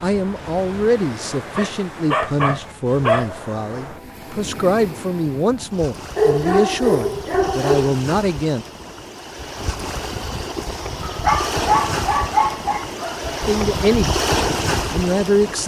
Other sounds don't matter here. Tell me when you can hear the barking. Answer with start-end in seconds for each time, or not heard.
1.3-3.3, 6.2-7.9, 11.1-13.3.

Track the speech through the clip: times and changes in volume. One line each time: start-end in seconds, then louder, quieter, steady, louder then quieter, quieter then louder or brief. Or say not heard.
0.0-8.7 steady
13.4-14.2 brief
14.9-15.6 brief.